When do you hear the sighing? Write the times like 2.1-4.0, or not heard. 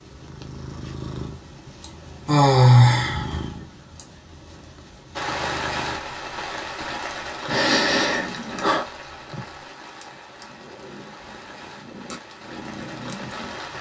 1.8-4.0, 7.5-8.8.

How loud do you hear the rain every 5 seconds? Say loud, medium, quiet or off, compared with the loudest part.
off, loud, medium.